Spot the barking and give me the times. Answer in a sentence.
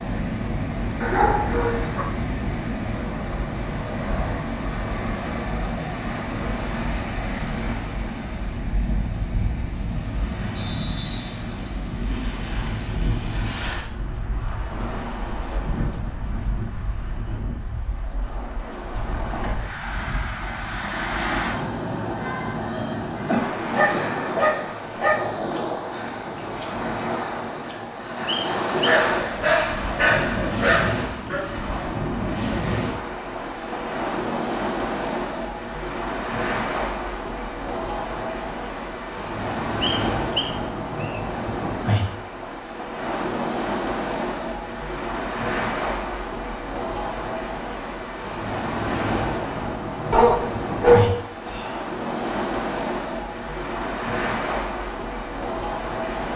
You can hear the barking from 1.0 to 2.0 s, from 23.7 to 25.2 s, from 28.8 to 31.5 s and from 50.1 to 51.8 s.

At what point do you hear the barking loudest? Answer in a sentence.
The volume of the barking peaks at 51 seconds.